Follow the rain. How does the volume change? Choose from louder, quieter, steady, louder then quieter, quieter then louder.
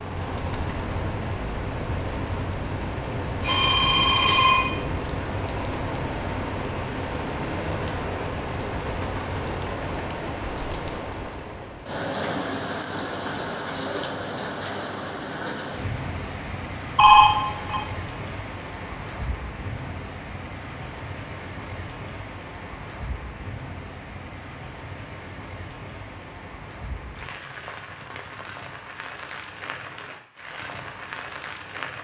quieter.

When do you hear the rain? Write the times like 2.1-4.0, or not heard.
0.0-31.9.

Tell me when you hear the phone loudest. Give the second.
17 s.